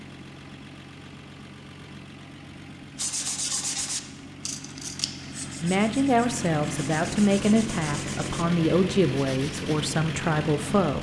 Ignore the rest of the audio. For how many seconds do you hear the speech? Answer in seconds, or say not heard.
5 s.